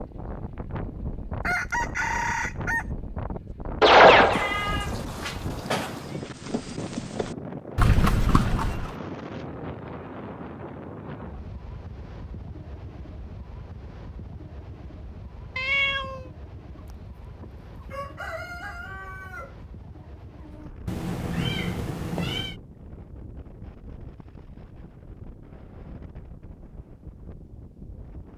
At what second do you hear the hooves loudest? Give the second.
4 s.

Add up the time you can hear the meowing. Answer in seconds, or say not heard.
4 s.